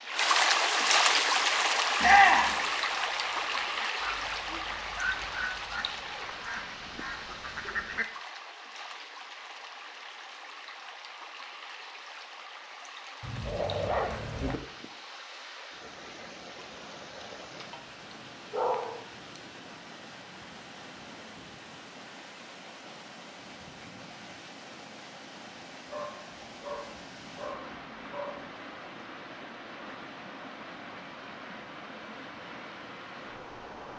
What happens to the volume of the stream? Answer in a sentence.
The volume of the stream goes down.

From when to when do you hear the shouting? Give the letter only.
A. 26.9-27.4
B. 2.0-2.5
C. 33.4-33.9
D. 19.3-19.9
B.